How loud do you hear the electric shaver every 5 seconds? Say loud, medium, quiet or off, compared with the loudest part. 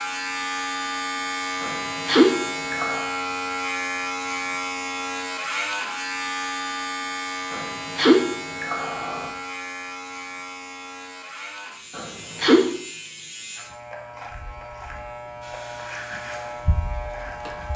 loud, loud, medium, medium.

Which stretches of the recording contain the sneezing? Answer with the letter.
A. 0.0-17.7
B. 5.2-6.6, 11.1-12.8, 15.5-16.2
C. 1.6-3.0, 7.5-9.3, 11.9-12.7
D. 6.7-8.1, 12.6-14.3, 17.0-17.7
C.